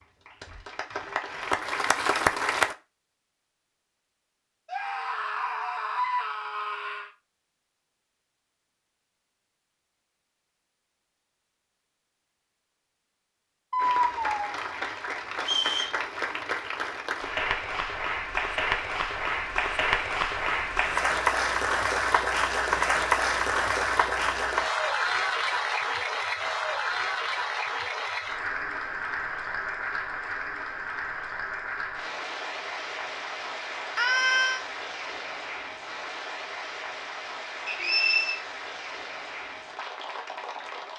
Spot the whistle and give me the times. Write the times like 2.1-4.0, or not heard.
15.4-16.0, 37.6-38.4.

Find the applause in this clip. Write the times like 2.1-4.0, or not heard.
0.0-2.8, 13.8-40.9.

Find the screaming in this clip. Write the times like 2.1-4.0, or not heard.
4.7-7.1, 13.7-14.5, 34.0-34.6.